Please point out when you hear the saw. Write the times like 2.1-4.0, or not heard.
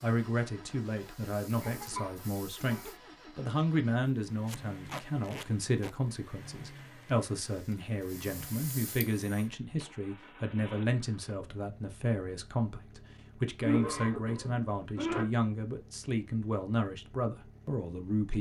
not heard.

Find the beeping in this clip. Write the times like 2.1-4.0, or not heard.
not heard.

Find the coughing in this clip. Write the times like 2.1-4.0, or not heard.
0.9-2.9, 13.6-15.2.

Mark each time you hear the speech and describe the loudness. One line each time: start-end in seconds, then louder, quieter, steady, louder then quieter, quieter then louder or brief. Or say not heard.
0.0-18.3 steady.